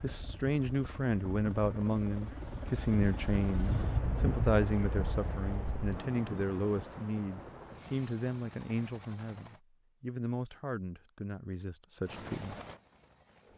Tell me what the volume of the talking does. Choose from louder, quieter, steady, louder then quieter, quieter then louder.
quieter.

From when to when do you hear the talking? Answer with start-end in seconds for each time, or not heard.
0.0-12.6.